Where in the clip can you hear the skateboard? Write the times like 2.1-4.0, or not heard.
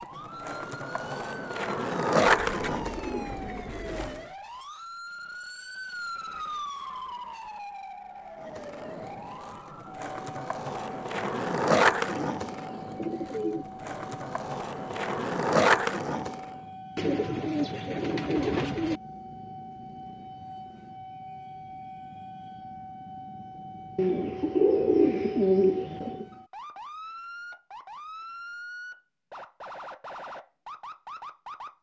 0.0-4.2, 8.4-16.6.